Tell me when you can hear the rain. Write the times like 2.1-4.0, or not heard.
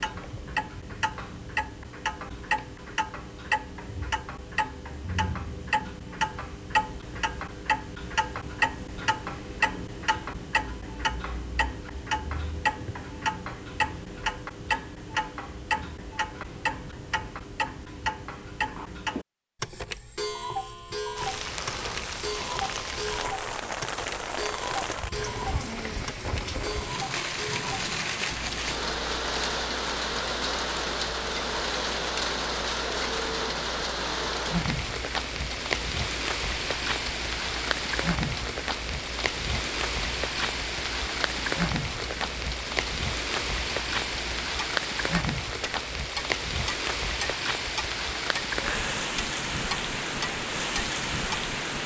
21.1-51.8.